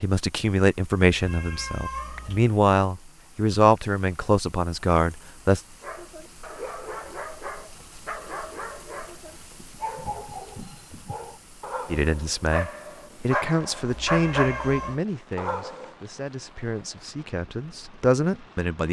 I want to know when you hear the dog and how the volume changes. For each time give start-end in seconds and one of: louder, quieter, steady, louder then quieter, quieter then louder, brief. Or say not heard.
5.8-15.9 louder.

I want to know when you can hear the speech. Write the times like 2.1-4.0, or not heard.
0.0-5.6, 11.9-18.8.